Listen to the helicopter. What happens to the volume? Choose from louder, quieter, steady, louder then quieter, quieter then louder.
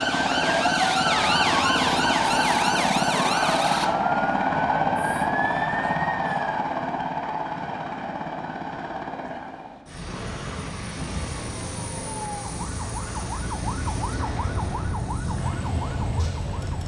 quieter.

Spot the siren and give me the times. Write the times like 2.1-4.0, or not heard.
0.0-6.6, 10.9-16.8.